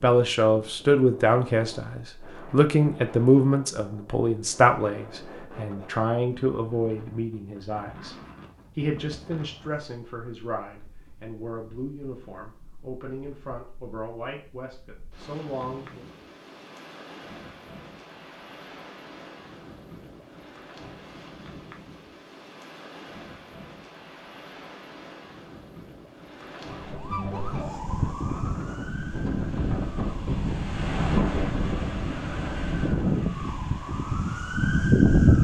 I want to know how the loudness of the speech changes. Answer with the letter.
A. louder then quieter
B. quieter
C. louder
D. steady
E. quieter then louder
B.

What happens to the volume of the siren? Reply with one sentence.
The volume of the siren goes down, then up.